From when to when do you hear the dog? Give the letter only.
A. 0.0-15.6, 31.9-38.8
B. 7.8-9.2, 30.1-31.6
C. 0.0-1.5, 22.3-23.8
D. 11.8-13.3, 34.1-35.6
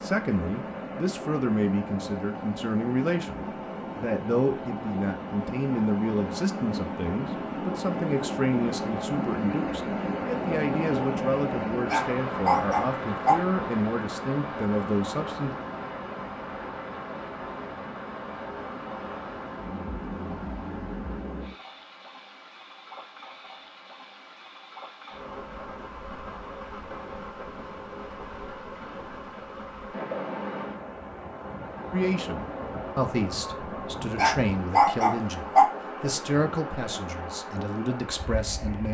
D.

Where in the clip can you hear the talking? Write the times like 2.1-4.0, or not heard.
0.0-15.6, 31.9-38.8.